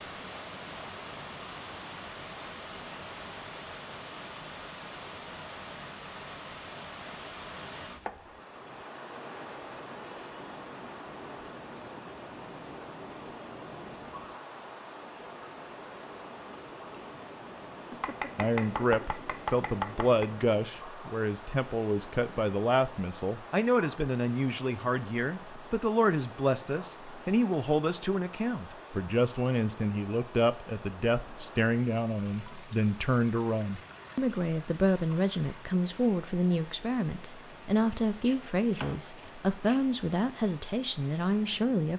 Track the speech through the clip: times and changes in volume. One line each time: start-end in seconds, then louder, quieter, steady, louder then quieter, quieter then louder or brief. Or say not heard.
18.4-41.9 steady.